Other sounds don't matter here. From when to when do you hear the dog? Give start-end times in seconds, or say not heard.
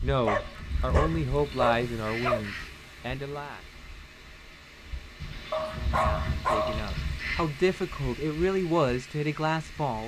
0.2-2.4, 5.5-6.9.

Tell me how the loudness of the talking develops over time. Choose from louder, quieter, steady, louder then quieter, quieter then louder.
quieter then louder.